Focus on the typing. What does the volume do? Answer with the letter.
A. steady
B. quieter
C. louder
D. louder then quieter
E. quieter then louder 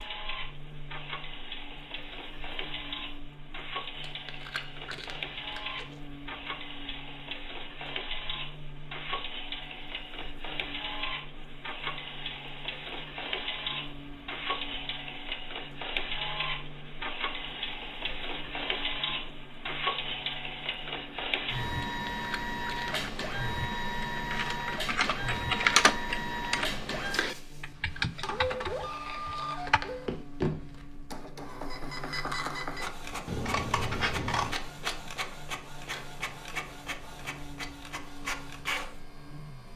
D.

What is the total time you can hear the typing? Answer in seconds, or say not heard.
7 s.